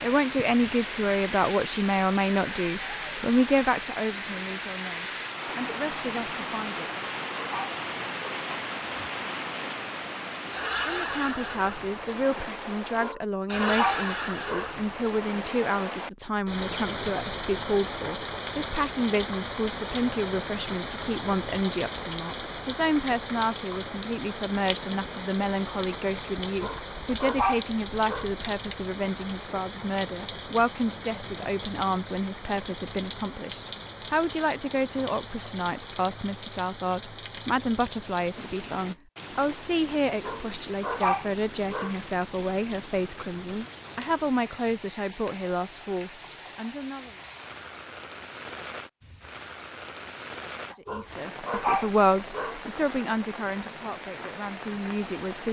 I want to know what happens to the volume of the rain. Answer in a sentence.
The loudness of the rain goes down.